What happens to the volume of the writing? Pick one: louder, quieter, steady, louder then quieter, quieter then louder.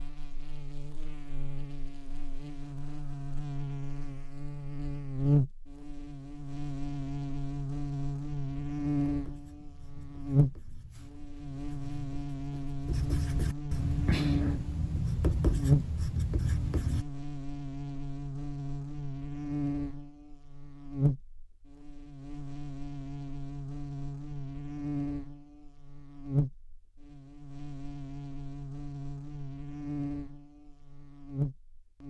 louder.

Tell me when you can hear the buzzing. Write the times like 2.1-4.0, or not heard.
0.0-32.0.